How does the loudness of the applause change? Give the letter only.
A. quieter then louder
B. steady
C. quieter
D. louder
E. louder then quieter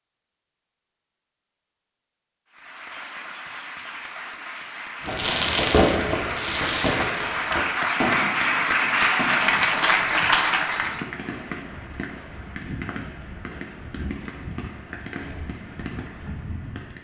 D.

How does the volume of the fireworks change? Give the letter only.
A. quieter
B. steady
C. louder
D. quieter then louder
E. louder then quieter
A.